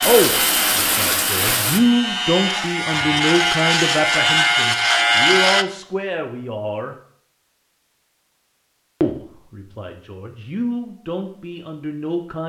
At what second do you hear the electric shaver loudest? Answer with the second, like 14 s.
5 s.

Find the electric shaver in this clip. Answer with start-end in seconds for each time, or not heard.
0.0-5.7.